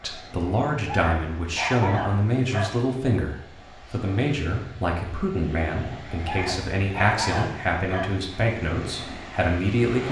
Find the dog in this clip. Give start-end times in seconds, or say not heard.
0.8-2.7, 6.2-8.1.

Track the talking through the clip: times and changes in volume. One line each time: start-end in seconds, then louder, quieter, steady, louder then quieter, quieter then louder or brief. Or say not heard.
0.0-10.0 steady.